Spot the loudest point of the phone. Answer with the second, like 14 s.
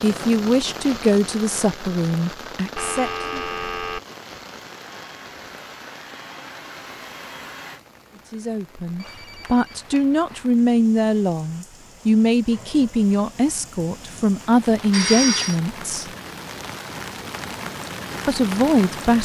15 s.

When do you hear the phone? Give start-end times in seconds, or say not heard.
2.8-4.0, 9.0-10.5, 14.7-15.6.